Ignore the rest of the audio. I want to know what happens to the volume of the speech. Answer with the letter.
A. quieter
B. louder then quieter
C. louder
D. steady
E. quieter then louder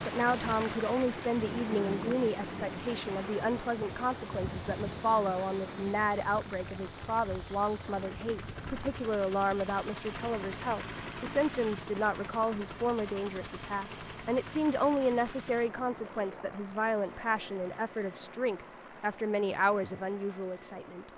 D.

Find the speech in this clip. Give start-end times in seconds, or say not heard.
0.1-21.1.